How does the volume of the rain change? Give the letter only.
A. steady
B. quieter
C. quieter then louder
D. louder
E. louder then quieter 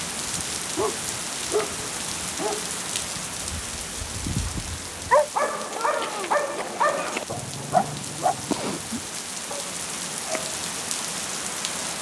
C.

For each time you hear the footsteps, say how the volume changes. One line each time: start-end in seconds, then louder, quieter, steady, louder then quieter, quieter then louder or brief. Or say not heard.
not heard.